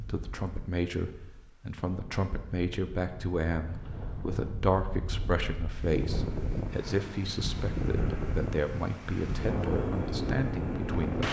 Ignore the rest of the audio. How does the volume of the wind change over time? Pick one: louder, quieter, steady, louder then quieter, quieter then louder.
louder.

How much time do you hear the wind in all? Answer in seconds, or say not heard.
11 s.